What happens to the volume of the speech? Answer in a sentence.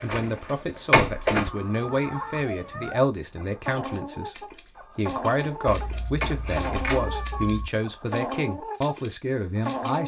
The volume of the speech stays about the same.